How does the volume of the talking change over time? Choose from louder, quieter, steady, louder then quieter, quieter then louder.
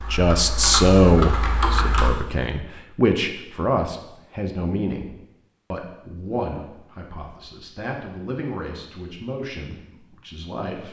quieter.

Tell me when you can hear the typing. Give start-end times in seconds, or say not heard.
0.0-2.1.